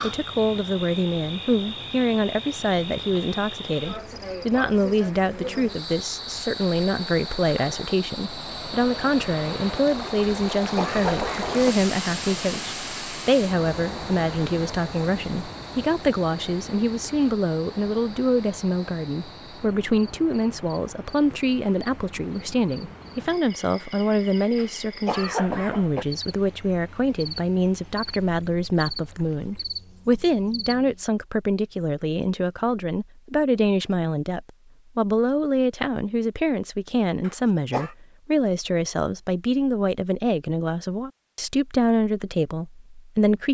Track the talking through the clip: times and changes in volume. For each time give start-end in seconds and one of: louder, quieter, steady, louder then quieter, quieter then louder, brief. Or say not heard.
0.0-43.4 steady.